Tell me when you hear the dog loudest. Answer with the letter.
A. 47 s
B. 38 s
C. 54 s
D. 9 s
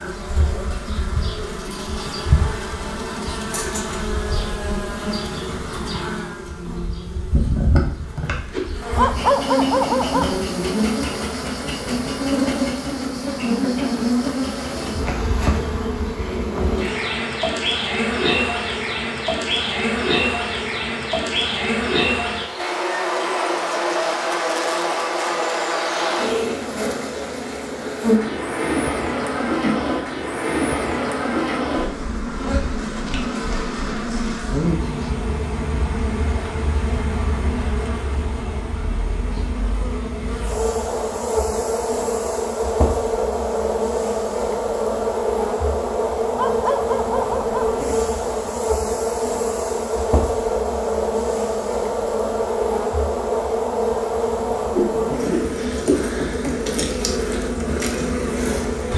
D.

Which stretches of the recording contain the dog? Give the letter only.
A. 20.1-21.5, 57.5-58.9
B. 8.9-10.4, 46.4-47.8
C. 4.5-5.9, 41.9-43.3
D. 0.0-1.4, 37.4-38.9
B.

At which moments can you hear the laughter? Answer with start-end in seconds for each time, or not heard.
not heard.